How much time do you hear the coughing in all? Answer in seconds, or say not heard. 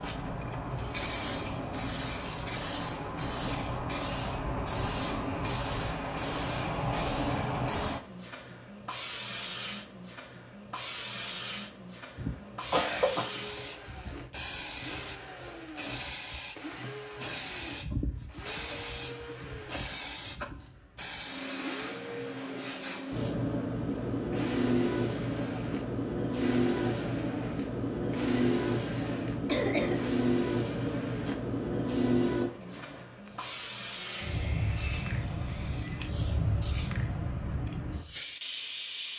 2 s.